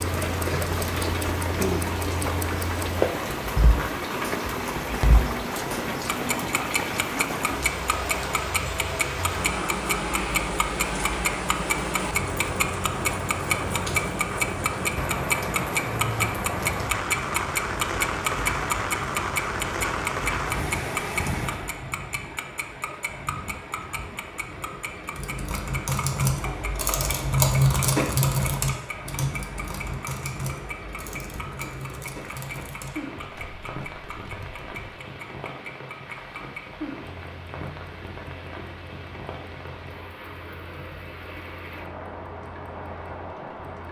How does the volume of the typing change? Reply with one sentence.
The volume of the typing goes up, then down.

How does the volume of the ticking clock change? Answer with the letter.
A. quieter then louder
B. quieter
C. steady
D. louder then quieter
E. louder
D.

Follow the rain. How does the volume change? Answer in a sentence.
The volume of the rain goes down.